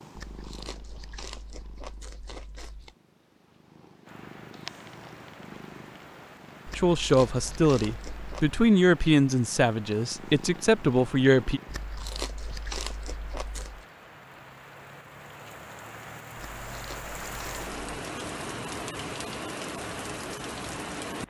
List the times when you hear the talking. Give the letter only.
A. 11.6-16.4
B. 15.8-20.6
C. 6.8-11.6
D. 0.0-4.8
C.